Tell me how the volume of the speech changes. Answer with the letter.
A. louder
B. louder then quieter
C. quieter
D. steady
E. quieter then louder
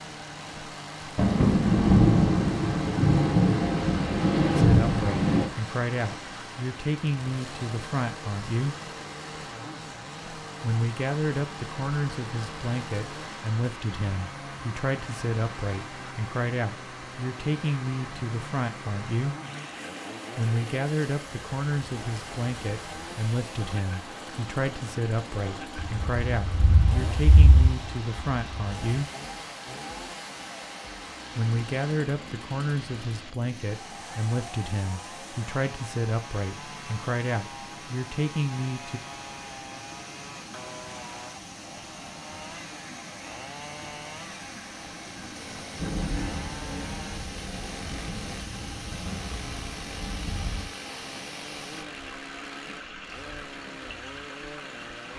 D.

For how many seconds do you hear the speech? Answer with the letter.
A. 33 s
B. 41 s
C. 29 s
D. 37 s
C.